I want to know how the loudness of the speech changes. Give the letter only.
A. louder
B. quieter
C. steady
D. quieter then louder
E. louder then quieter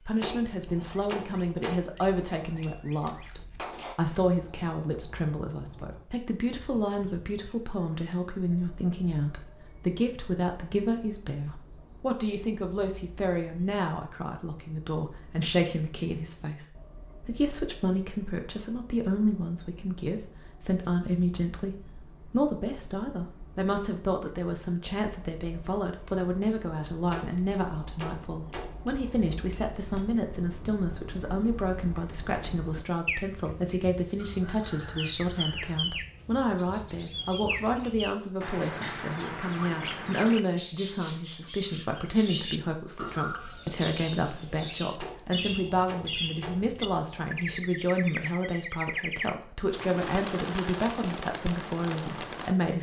C.